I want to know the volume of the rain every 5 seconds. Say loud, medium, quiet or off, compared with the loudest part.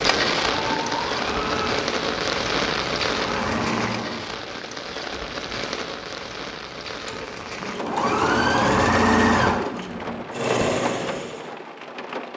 loud, medium, medium.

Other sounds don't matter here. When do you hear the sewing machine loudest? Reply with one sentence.
The volume of the sewing machine peaks at 9 seconds.